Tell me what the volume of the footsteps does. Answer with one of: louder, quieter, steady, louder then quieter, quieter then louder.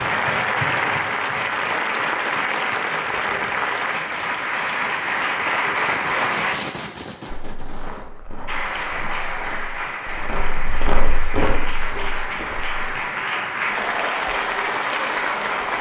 louder then quieter.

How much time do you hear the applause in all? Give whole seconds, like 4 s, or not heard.
14 s.